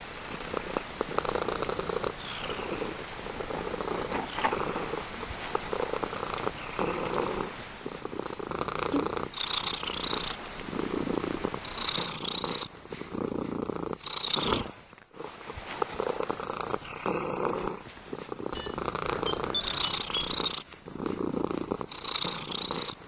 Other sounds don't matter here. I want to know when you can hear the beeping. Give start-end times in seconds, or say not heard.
18.5-20.5.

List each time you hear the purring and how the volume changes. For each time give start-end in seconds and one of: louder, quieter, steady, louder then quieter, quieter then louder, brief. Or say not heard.
0.0-23.0 steady.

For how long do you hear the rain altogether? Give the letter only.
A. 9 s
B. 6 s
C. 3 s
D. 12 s
D.